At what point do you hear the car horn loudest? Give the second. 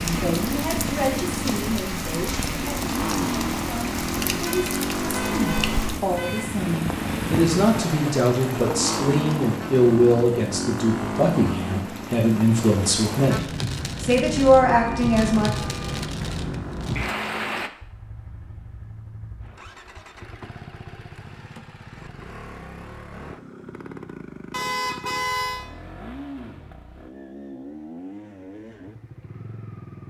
25 s.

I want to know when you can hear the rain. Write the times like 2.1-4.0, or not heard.
0.0-17.7.